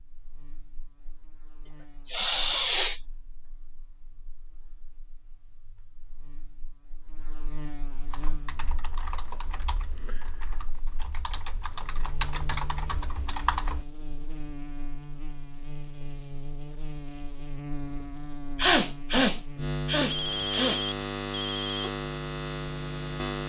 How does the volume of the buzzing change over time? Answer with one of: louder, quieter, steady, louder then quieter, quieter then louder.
louder.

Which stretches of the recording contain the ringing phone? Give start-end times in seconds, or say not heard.
20.1-21.9.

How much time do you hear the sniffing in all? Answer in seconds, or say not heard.
3 s.